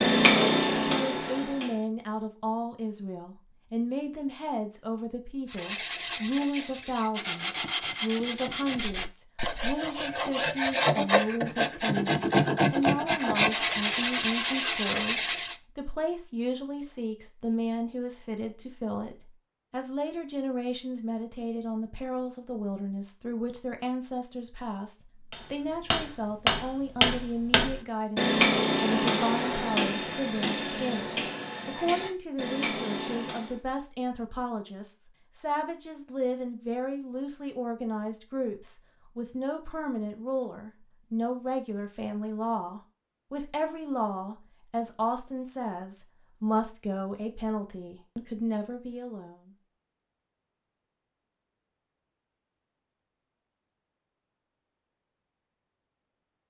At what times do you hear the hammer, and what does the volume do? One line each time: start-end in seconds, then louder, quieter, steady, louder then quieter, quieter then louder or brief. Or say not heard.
0.0-1.8 brief
25.3-33.5 quieter.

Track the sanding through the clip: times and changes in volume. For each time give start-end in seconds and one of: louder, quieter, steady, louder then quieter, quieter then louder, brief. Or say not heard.
5.5-15.6 louder.